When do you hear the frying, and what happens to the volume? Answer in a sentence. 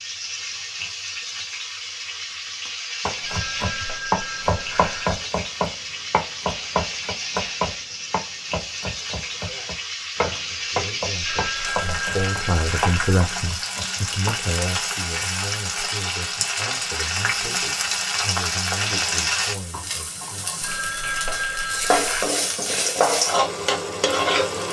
You can hear the frying from 0.0 to 24.6 s, getting louder.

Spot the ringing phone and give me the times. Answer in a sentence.
The ringing phone can be heard from 3.2 to 5.2 s, from 11.2 to 13.2 s and from 20.6 to 22.3 s.